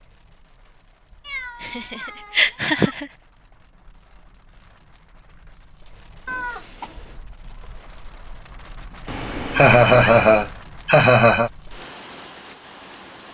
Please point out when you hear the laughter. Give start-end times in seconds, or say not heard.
1.6-3.0, 9.5-11.5.